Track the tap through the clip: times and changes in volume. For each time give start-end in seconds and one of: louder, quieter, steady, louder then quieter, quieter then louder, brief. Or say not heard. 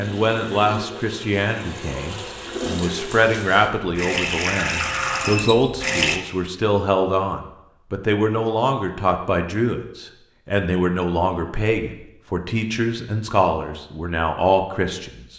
0.0-6.2 louder.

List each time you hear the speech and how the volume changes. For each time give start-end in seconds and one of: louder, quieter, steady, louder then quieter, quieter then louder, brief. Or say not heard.
0.0-15.2 steady.